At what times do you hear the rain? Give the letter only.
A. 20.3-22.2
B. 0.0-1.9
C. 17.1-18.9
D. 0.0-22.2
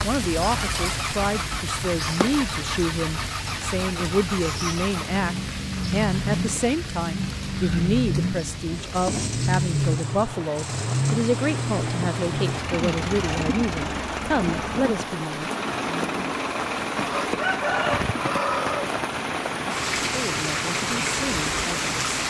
D.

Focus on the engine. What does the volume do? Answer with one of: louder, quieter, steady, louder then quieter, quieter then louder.
louder then quieter.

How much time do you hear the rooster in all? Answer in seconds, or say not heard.
2 s.